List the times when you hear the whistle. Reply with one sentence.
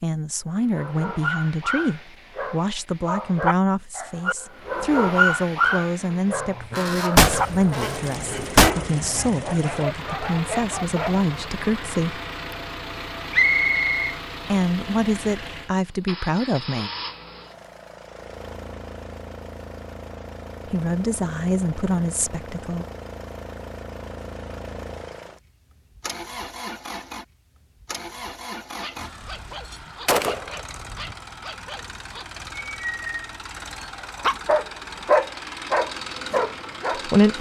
You can hear the whistle from 13.3 to 14.2 s.